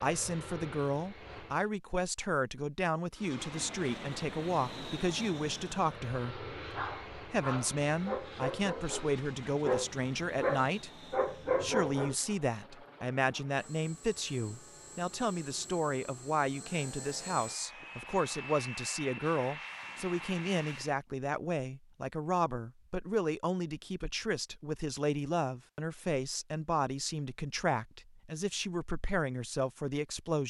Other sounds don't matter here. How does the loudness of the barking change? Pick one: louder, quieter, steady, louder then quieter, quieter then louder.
louder.